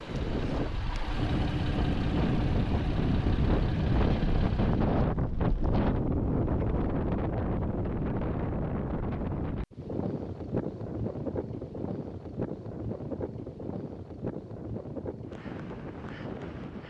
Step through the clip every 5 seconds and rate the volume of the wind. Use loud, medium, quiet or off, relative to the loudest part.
loud, loud, medium, medium.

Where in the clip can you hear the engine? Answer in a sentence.
The engine can be heard from 0.0 to 5.0 s.